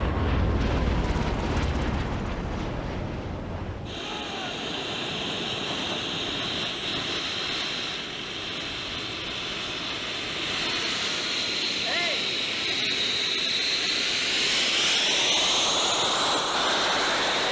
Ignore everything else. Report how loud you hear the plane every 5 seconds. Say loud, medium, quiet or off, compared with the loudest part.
medium, medium, loud, loud.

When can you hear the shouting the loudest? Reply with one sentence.
The loudest moment of the shouting is at 12 seconds.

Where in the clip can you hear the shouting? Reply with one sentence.
You can hear the shouting from 4.0 to 4.5 s and from 11.8 to 12.3 s.